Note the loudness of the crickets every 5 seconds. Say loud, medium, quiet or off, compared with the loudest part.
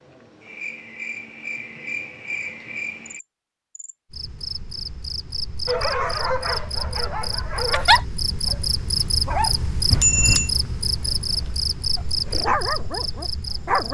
medium, loud, loud.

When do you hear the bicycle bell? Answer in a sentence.
You can hear the bicycle bell from 9.9 to 10.5 s.